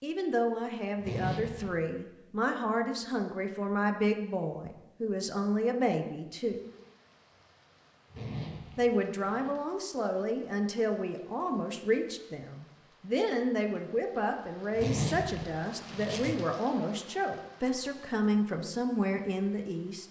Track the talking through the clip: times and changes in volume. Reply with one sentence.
You can hear the talking from 0.0 to 6.6 s, at a steady volume; and from 8.8 to 20.0 s, at a steady volume.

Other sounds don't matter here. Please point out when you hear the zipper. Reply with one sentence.
The zipper can be heard from 1.0 to 1.8 s, from 8.1 to 9.5 s and from 14.8 to 16.4 s.